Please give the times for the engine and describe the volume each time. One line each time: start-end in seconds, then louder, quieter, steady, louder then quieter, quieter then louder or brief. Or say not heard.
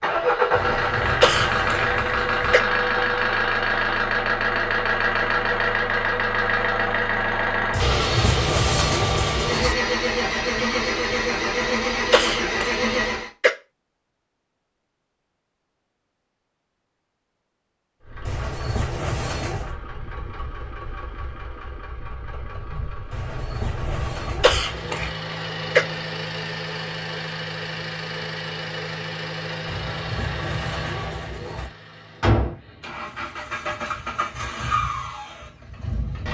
0.0-13.3 steady
18.0-36.2 louder.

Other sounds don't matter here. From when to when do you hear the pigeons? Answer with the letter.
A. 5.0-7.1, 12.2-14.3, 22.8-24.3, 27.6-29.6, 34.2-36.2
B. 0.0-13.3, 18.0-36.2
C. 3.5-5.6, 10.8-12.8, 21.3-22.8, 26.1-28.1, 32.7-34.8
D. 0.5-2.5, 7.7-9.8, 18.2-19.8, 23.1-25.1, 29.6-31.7
D.